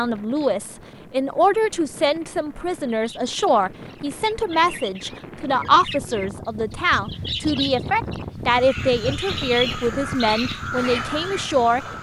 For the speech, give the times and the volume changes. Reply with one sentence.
You can hear the speech from 0.0 to 11.8 s, at a steady volume.